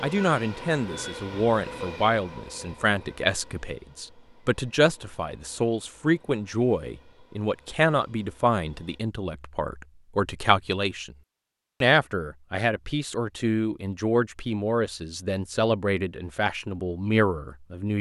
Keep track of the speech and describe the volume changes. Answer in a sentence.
The volume of the speech stays about the same.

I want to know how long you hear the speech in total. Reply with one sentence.
You can hear the speech for 17 seconds altogether.